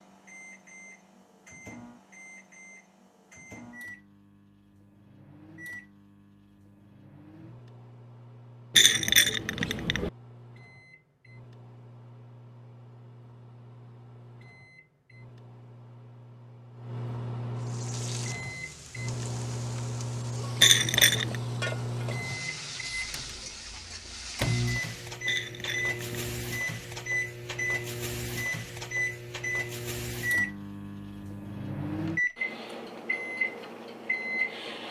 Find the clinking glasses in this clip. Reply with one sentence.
You can hear the clinking glasses from 8.8 to 10.1 s, from 20.6 to 21.4 s and from 25.2 to 26.3 s.